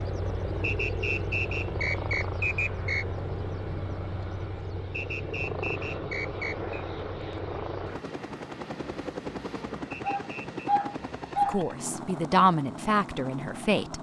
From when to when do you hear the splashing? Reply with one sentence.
You can't hear the splashing here.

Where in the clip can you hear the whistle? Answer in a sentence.
The whistle can be heard from 0.6 to 3.0 s, from 4.9 to 6.8 s and from 9.9 to 10.5 s.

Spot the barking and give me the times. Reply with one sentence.
The barking can be heard from 10.0 to 11.6 s.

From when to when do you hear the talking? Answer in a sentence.
The talking can be heard from 11.4 to 13.9 s.